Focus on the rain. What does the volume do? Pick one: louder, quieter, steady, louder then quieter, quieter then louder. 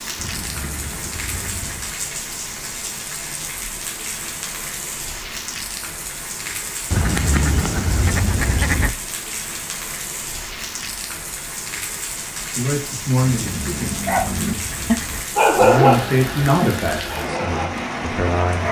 steady.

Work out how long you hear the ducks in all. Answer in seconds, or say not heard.
6 s.